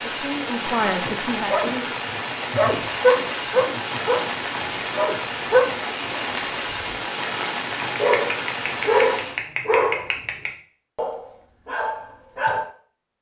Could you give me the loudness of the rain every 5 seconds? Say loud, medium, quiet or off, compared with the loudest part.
loud, loud, off.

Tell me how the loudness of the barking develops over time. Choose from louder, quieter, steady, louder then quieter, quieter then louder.
quieter.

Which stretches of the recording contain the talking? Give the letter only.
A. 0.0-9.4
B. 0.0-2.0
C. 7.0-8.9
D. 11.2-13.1
B.